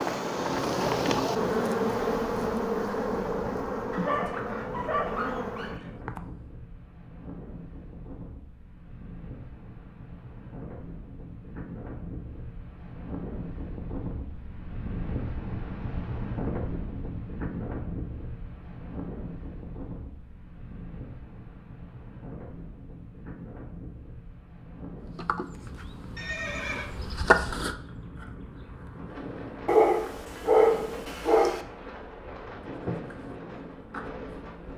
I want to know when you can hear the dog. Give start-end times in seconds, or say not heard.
3.9-5.9, 29.6-31.6.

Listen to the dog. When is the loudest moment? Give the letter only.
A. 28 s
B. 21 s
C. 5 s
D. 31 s
D.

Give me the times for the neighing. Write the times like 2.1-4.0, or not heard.
26.1-26.9.